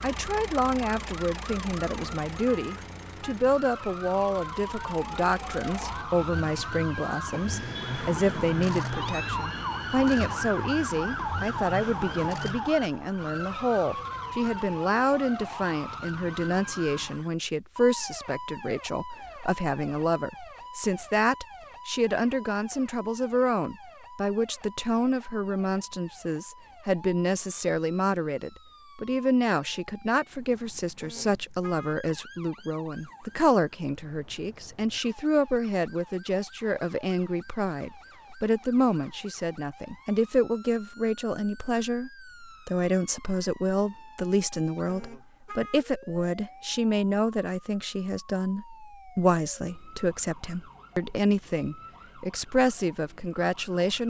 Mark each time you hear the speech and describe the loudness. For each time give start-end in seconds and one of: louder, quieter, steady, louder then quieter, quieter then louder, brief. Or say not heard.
0.0-54.0 steady.